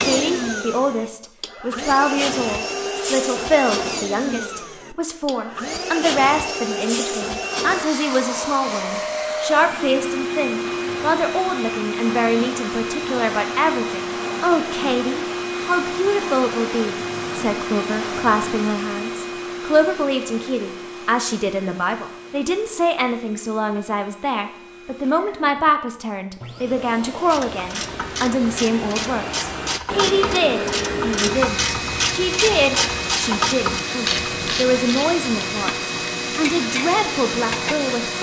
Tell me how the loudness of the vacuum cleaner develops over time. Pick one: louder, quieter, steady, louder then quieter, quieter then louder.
quieter then louder.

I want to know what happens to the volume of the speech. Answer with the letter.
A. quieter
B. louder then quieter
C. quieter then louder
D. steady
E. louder
D.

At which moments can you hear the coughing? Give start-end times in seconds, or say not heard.
not heard.